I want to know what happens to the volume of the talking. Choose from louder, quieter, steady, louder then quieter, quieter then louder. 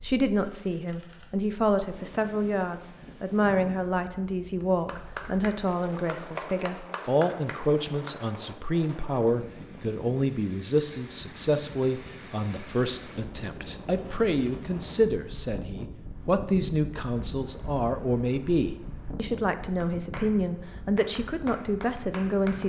steady.